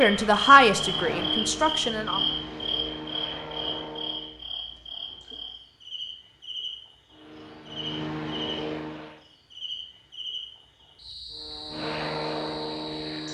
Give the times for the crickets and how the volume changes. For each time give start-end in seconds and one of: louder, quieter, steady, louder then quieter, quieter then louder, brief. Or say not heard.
0.0-13.2 quieter.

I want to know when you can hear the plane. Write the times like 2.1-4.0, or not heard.
0.0-4.4, 7.1-9.2, 11.3-13.2.